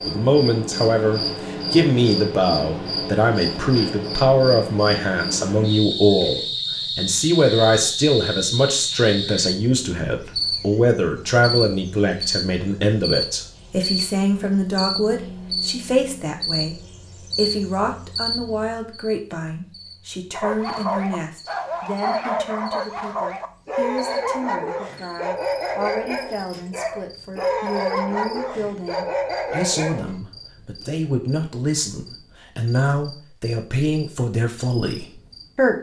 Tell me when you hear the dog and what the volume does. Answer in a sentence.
You can hear the dog from 20.3 to 30.1 s, at a steady volume.